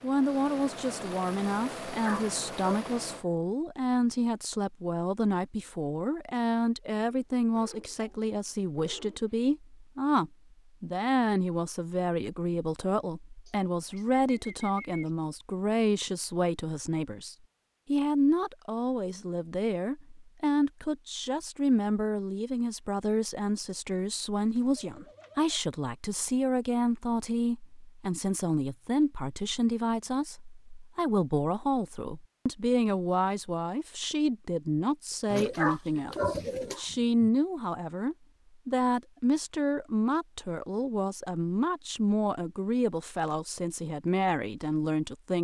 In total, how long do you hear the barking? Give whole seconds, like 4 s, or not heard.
2 s.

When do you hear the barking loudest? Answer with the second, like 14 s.
36 s.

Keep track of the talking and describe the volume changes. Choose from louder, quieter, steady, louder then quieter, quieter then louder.
steady.